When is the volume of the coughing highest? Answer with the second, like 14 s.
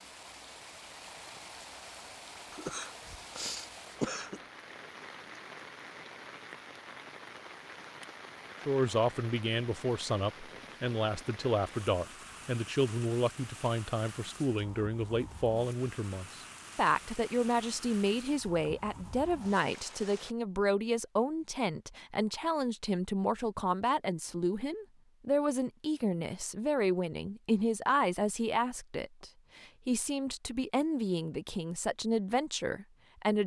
4 s.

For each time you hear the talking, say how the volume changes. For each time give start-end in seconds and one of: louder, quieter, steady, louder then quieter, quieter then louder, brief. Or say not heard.
8.7-33.4 steady.